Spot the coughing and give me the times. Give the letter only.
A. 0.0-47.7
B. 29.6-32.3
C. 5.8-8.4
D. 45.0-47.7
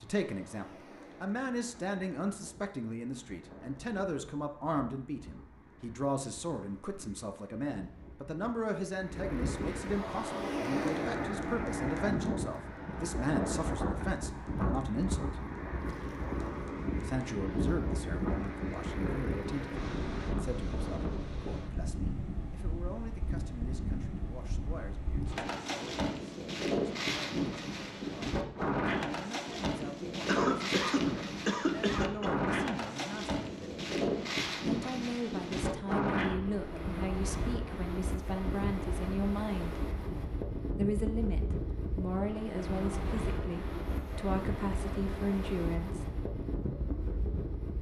B.